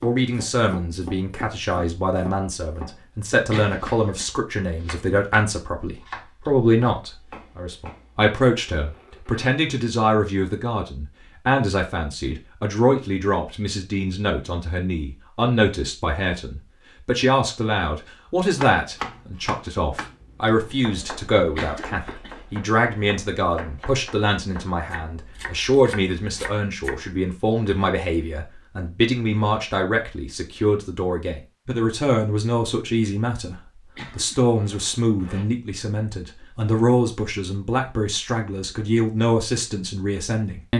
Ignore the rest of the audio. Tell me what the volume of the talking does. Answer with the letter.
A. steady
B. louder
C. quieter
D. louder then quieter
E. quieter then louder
A.